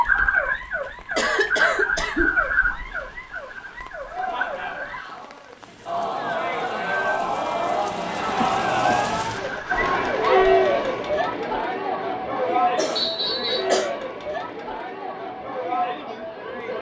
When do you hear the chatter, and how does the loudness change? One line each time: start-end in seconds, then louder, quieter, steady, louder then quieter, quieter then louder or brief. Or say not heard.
4.0-16.7 louder then quieter.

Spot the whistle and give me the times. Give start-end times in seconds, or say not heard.
12.9-13.7.